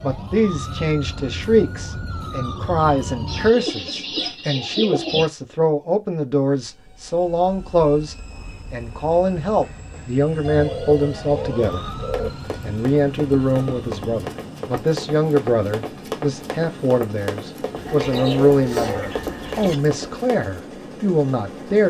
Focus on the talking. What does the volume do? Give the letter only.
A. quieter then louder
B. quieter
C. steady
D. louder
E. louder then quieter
C.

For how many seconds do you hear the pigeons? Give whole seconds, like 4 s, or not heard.
6 s.